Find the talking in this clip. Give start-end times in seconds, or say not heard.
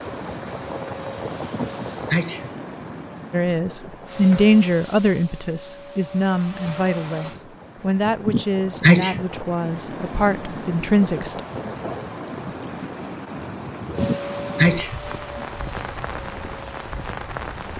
3.3-11.4.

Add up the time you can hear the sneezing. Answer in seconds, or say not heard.
5 s.